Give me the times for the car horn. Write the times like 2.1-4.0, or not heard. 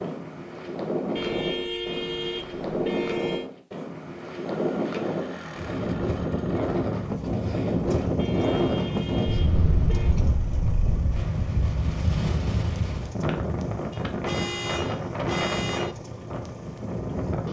1.1-3.5, 8.2-10.2, 13.9-15.9.